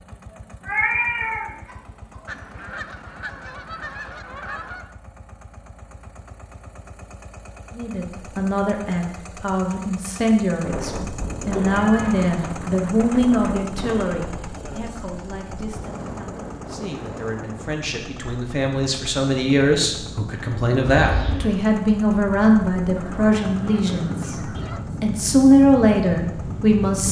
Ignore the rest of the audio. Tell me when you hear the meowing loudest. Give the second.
1 s.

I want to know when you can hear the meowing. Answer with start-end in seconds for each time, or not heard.
0.7-2.2, 11.6-12.3, 20.9-21.4.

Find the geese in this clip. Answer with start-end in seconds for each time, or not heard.
2.2-4.9, 22.9-24.8.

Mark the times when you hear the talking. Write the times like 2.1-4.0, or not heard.
7.8-24.4, 25.0-27.0.